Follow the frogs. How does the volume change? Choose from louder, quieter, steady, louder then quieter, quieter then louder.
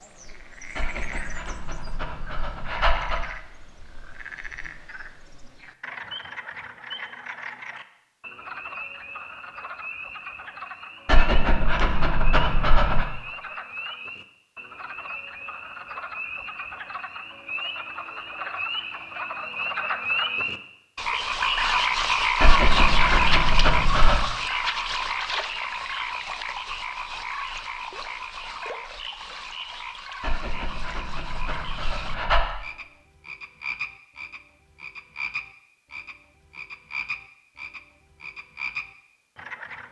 louder then quieter.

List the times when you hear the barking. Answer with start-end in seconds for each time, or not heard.
0.8-3.3, 11.1-13.1, 22.4-24.2, 30.2-32.5.